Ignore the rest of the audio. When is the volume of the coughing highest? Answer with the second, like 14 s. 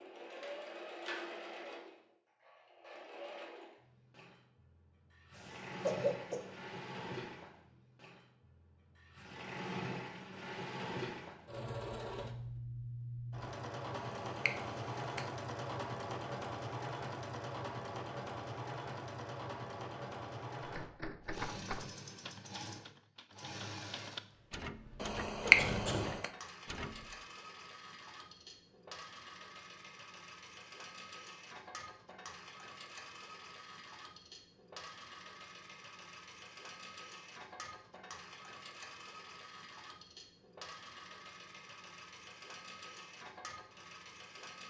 6 s.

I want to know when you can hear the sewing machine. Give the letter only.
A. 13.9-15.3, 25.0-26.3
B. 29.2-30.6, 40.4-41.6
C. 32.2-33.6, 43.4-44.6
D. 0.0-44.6
D.